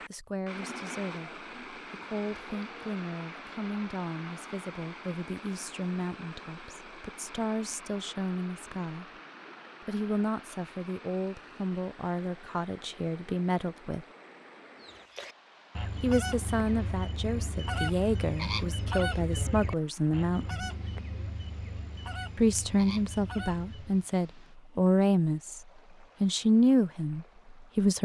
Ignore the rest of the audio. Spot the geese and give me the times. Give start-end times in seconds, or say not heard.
14.8-24.1.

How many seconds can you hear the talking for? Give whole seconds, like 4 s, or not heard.
23 s.